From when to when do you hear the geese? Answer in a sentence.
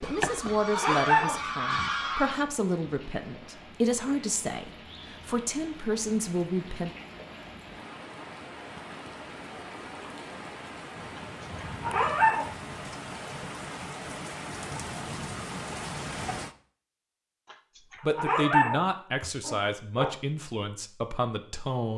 The geese can be heard from 0.0 to 2.5 s.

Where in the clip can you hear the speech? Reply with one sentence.
The speech can be heard from 0.0 to 6.9 s and from 18.0 to 21.9 s.